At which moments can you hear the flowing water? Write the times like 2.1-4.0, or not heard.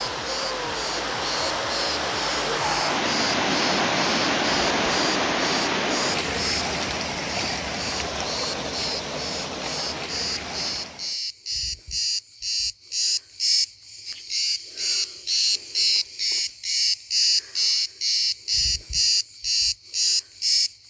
0.0-11.2.